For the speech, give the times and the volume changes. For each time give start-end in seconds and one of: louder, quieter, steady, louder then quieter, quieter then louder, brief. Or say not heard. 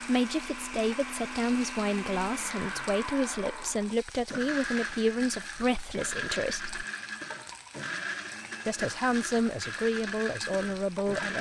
0.1-6.8 steady
8.7-11.3 brief.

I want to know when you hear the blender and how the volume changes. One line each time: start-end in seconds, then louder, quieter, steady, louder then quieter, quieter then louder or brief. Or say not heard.
0.0-11.3 steady.